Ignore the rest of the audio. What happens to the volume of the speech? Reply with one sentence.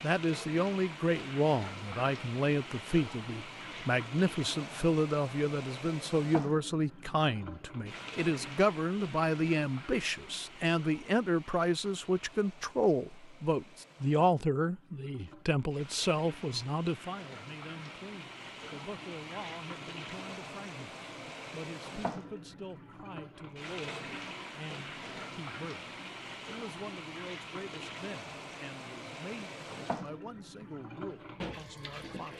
The loudness of the speech goes down.